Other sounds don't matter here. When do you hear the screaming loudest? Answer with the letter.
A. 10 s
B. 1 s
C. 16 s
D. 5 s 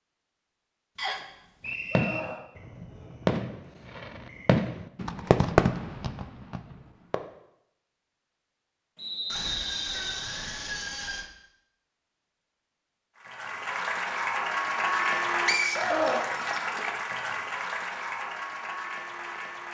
C.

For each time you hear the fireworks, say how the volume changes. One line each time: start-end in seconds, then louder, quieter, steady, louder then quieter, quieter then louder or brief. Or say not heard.
1.6-7.2 louder then quieter.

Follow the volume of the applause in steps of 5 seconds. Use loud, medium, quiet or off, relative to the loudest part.
off, off, loud, loud.